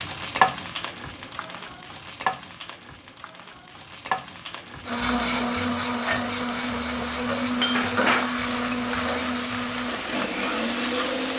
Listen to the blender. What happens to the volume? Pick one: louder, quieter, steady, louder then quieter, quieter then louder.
steady.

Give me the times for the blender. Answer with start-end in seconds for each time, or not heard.
4.8-11.3.